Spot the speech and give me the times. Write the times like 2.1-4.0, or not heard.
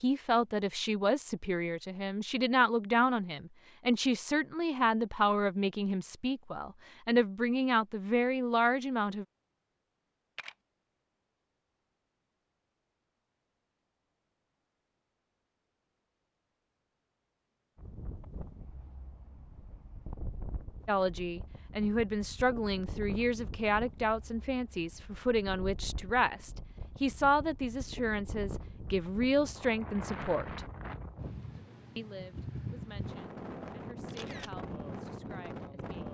0.0-9.2, 20.9-30.6, 31.9-36.1.